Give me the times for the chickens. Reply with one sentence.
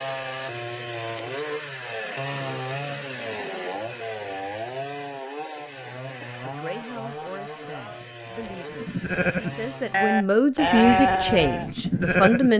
You can't hear the chickens here.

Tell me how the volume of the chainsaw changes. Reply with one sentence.
The loudness of the chainsaw goes down.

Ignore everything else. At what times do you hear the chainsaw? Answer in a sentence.
You can hear the chainsaw from 0.0 to 10.2 s.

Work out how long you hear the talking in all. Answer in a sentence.
You can hear the talking for 6 seconds altogether.